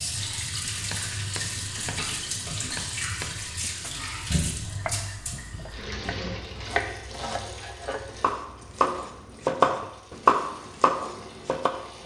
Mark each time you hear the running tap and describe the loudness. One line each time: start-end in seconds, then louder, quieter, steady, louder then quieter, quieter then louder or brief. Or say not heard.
0.0-12.0 quieter.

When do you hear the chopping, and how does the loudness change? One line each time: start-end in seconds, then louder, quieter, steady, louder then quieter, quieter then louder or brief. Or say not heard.
0.6-11.8 louder.